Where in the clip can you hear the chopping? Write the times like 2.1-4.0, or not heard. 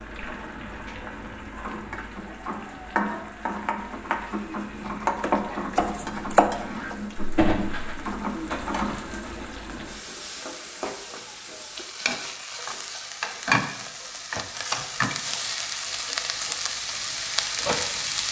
5.1-7.0.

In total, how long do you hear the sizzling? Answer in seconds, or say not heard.
18 s.